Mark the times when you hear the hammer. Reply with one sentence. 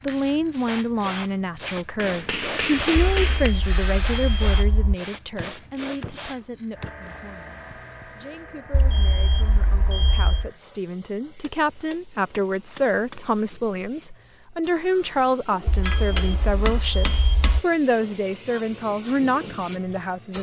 The hammer can be heard from 1.9 to 3.5 s, from 5.3 to 6.9 s, from 11.4 to 13.2 s and from 15.8 to 17.6 s.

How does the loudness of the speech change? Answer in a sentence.
The loudness of the speech goes down, then up.